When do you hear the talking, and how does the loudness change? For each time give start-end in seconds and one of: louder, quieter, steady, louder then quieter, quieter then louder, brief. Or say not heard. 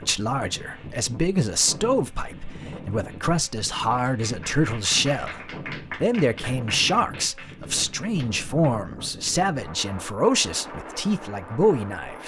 0.0-12.2 steady.